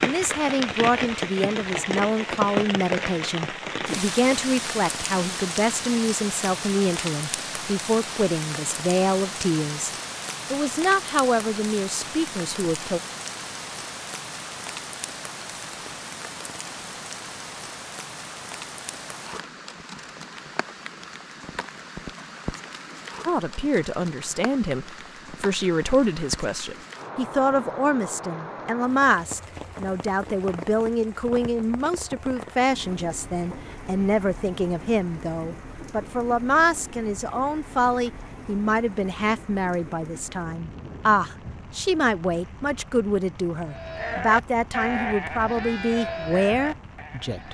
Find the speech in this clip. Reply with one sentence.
The speech can be heard from 0.0 to 13.0 s and from 23.2 to 47.4 s.